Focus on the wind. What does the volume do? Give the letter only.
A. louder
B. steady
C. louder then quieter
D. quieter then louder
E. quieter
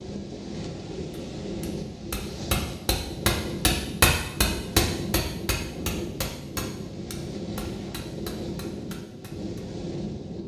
B.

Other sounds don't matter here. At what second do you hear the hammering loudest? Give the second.
4 s.